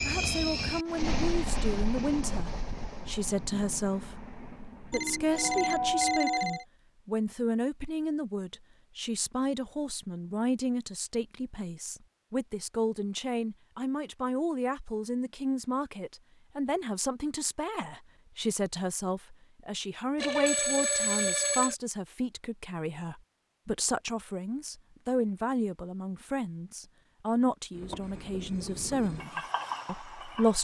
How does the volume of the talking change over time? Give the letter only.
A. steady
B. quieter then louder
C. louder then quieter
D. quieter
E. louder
A.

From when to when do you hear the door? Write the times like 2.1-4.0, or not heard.
not heard.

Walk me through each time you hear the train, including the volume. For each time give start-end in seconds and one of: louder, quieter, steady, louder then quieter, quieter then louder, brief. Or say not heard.
0.0-6.2 quieter
27.7-30.5 brief.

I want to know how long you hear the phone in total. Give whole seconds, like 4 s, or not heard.
3 s.